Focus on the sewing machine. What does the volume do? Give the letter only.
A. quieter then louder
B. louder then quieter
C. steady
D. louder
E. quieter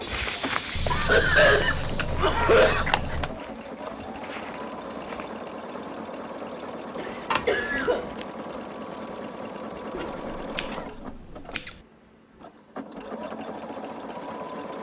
C.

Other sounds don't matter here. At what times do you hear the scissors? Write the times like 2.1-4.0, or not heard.
0.8-3.4, 7.3-8.2, 9.9-11.8.